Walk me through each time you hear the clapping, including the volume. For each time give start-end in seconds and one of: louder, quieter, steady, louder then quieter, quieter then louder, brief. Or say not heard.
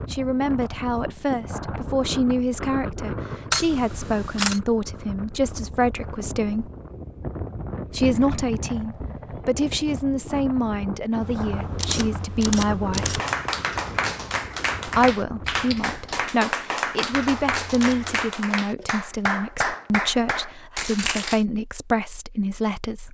13.0-21.4 steady.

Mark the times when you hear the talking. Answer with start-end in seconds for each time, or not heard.
0.0-6.7, 7.9-13.2, 14.8-23.0.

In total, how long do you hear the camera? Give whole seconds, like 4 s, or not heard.
4 s.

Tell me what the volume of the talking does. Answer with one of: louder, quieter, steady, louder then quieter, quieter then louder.
steady.